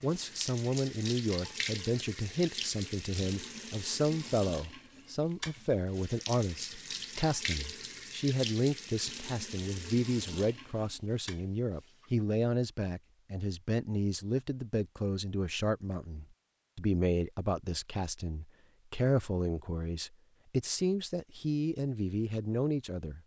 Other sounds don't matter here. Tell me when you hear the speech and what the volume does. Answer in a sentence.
You can hear the speech from 0.0 to 23.2 s, at a steady volume.